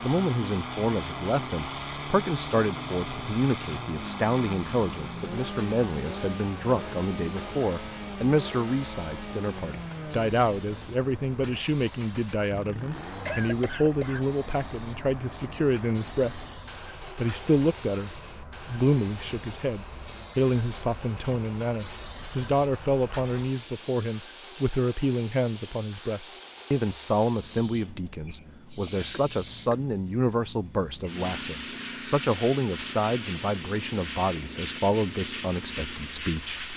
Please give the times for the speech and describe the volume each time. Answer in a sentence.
You can hear the speech from 0.0 to 16.6 s, at a steady volume; and from 17.1 to 36.7 s, at a steady volume.